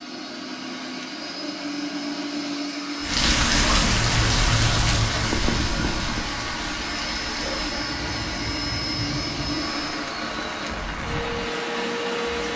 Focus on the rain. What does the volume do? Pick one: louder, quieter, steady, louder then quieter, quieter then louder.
quieter.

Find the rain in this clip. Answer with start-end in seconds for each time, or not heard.
3.0-12.5.